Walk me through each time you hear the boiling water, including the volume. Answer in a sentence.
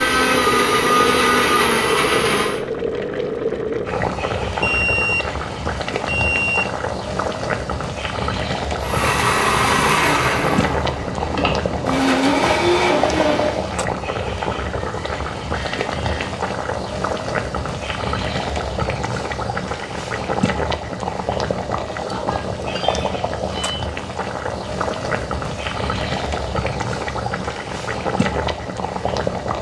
You can hear the boiling water from 0.0 to 29.5 s, at a steady volume.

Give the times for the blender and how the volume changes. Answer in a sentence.
You can hear the blender briefly from 0.0 to 2.6 s; and from 8.8 to 13.7 s, getting quieter then louder.